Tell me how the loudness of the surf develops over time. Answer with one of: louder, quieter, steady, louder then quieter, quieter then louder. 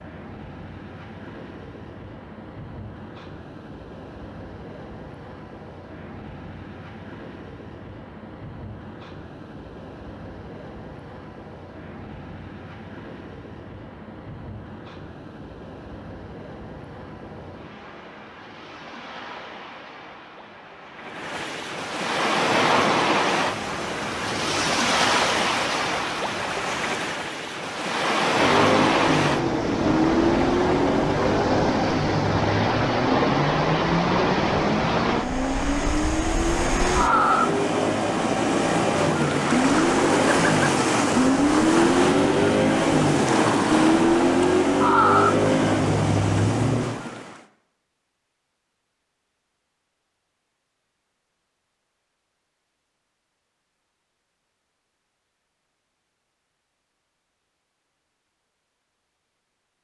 louder.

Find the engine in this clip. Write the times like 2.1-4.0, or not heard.
28.4-46.9.